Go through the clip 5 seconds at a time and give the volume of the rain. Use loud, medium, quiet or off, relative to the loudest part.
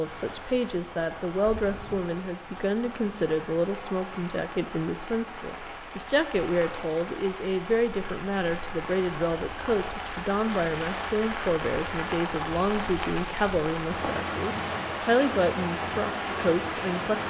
medium, medium, loud, loud.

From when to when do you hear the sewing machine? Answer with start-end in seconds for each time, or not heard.
not heard.